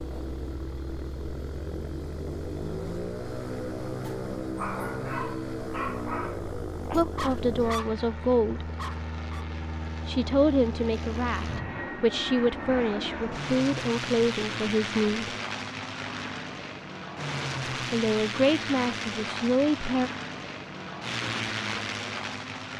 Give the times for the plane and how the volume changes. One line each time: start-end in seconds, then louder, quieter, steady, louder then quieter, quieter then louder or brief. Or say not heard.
0.0-22.7 steady.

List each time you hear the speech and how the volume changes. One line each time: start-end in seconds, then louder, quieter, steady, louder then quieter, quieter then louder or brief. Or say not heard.
6.9-8.7 brief
10.1-15.3 steady
17.9-20.1 brief.